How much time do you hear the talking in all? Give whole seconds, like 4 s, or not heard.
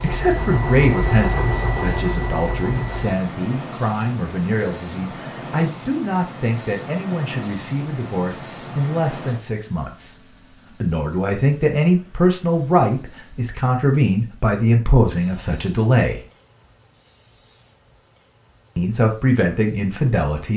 18 s.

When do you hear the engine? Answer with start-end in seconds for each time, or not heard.
0.0-3.1.